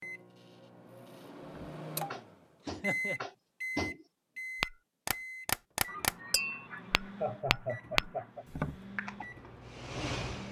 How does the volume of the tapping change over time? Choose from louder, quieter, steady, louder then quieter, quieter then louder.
louder.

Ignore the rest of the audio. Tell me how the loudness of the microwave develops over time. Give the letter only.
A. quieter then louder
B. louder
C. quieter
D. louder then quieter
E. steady
D.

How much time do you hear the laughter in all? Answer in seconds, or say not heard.
3 s.